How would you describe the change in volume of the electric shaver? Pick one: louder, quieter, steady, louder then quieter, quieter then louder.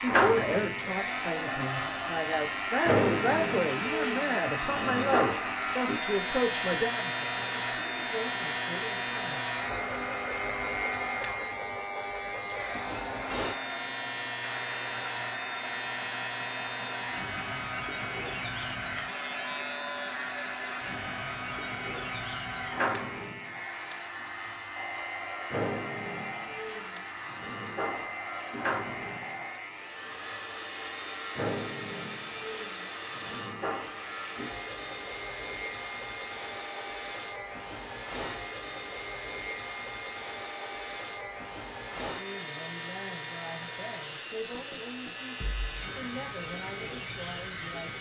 quieter.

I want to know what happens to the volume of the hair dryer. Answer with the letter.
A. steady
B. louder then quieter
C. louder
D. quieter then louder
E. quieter
E.